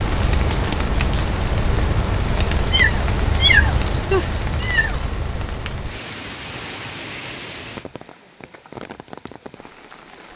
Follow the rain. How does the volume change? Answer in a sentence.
The volume of the rain goes down.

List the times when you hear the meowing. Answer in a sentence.
The meowing can be heard from 2.7 to 5.1 s.